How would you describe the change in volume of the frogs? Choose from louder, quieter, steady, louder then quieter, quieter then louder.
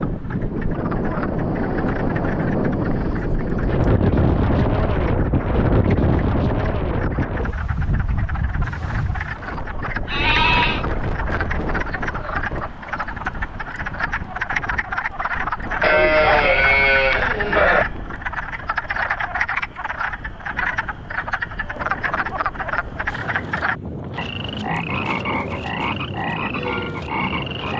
louder.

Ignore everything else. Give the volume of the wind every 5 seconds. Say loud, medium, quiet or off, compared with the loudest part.
loud, loud, medium, quiet, quiet, medium.